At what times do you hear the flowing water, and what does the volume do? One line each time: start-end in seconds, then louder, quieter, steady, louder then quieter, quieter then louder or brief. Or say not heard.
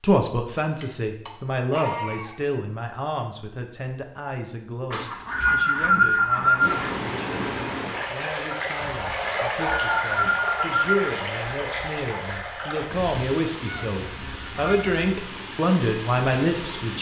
6.5-16.9 quieter.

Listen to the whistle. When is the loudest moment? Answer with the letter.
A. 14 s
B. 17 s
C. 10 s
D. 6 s
D.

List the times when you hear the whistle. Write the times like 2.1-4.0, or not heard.
4.9-6.8, 9.2-10.9.